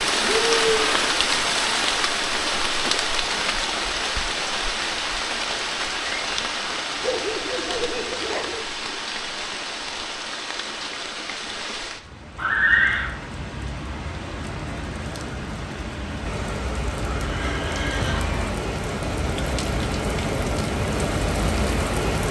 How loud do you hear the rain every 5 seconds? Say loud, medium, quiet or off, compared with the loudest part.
loud, medium, medium, medium, loud.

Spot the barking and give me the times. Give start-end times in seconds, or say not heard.
7.0-8.7.